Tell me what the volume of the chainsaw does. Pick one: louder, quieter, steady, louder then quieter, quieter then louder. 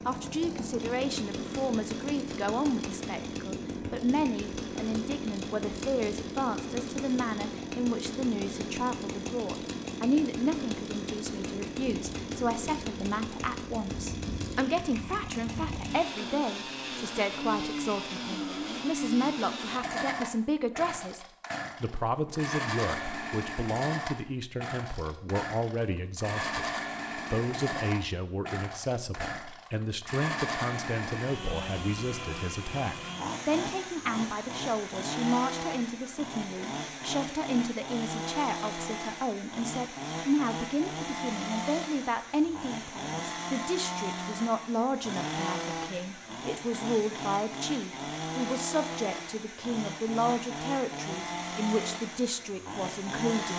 steady.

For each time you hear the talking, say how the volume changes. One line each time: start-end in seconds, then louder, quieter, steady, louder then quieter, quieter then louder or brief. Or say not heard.
0.1-53.5 steady.